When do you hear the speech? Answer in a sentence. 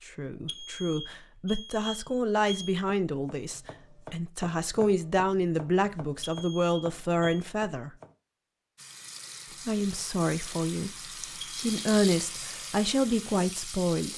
The speech can be heard from 0.1 to 7.9 s, from 9.7 to 10.9 s and from 11.6 to 14.1 s.